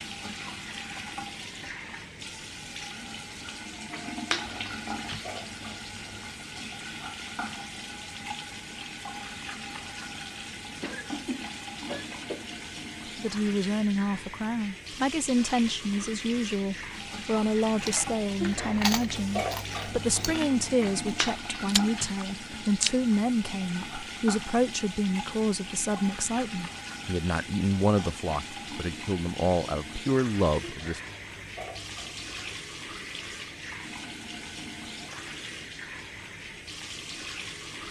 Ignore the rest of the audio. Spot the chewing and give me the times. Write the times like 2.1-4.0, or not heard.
17.6-22.9.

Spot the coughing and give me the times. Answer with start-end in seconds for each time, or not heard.
10.8-12.6.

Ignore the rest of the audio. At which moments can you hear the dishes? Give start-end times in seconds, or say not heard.
4.3-6.2, 18.4-20.4, 30.6-32.5.